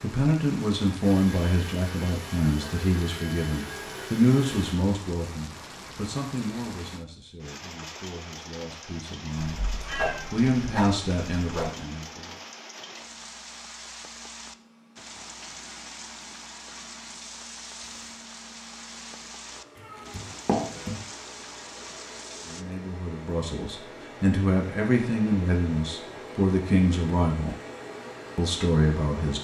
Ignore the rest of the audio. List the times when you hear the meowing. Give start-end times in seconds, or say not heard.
9.3-11.8, 19.8-21.0.